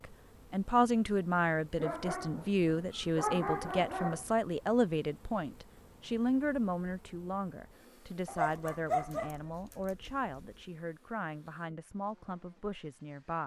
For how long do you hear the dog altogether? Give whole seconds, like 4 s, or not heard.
5 s.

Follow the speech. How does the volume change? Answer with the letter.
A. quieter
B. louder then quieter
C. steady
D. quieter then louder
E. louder
A.